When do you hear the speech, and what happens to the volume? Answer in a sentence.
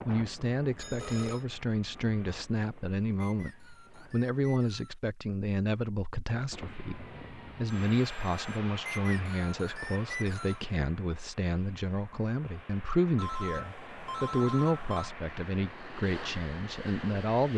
The speech can be heard from 0.1 to 17.5 s, at a steady volume.